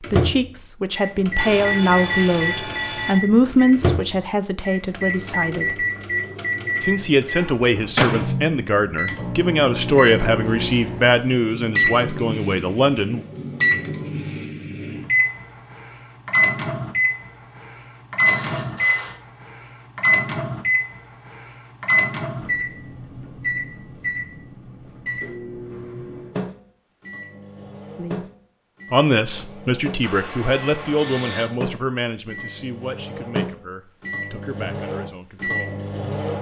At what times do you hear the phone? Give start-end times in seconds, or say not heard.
1.4-3.2, 18.2-19.2, 30.0-31.4.